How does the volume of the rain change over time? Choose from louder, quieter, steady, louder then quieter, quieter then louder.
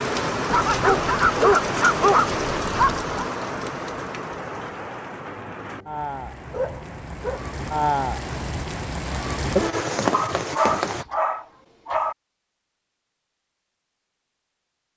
quieter then louder.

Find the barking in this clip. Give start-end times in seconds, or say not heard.
0.5-3.1, 6.5-7.5, 10.1-12.2.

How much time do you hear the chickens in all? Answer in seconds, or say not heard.
not heard.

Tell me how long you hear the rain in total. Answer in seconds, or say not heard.
11 s.